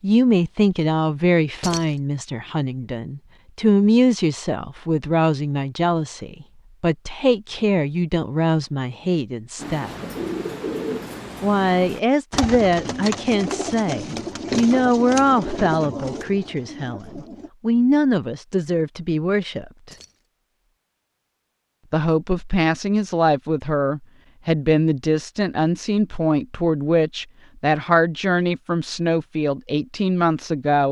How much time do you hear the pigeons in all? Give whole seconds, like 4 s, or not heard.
8 s.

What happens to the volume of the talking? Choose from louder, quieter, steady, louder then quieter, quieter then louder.
steady.